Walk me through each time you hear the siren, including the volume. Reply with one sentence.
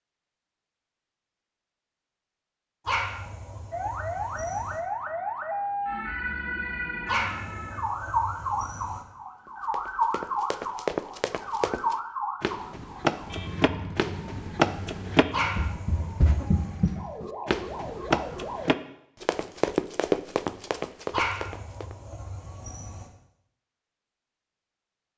The siren can be heard from 3.7 to 18.8 s, getting quieter.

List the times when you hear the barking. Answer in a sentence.
You can hear the barking from 2.9 to 4.8 s, from 7.0 to 9.1 s, from 15.3 to 16.9 s and from 21.1 to 23.1 s.